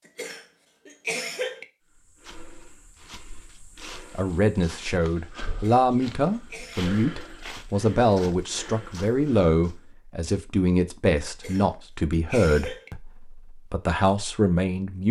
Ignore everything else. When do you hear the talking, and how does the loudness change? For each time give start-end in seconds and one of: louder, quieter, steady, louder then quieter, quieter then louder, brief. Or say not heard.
4.1-15.0 steady.